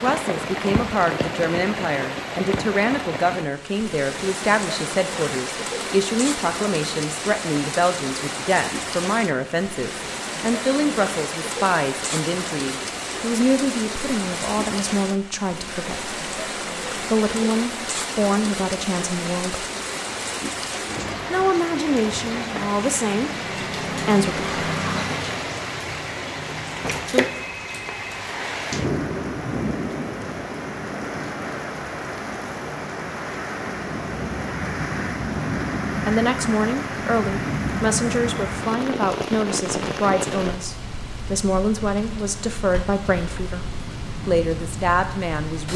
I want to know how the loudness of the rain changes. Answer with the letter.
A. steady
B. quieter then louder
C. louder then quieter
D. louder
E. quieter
A.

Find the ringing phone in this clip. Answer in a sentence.
The ringing phone can be heard from 27.2 to 28.2 s.